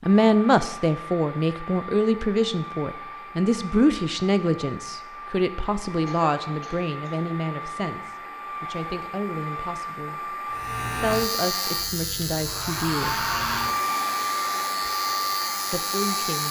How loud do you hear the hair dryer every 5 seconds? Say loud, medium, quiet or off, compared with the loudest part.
medium, medium, loud, loud.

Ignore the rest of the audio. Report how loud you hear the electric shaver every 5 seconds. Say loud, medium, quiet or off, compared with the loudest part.
off, off, loud, loud.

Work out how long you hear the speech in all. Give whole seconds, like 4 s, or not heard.
14 s.